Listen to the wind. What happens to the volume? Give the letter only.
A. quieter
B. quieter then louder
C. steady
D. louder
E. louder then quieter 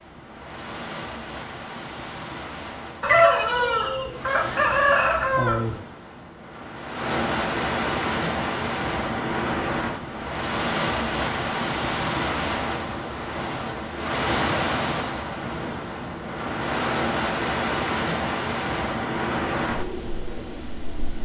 D.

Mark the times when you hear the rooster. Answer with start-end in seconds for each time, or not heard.
3.0-5.8.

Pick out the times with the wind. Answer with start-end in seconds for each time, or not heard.
0.0-21.2.